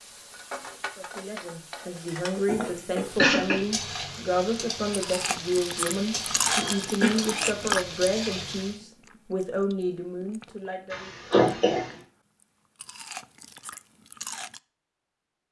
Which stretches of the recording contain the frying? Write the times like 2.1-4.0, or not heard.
0.0-8.8.